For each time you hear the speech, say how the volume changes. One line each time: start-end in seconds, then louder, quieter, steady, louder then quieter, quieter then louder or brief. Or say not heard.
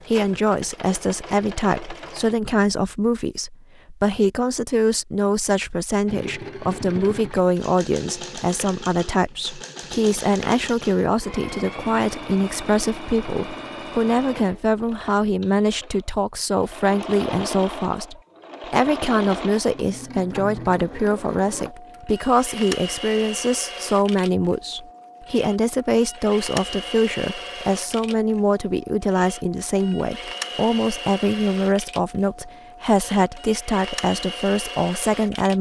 0.1-35.5 steady.